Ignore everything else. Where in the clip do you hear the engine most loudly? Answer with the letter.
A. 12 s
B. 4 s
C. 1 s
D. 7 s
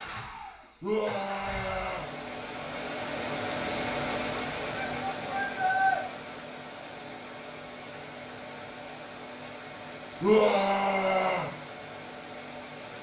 B.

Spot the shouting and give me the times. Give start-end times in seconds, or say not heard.
0.8-2.1, 4.7-6.0, 10.2-11.5.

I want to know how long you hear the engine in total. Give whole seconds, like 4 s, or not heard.
13 s.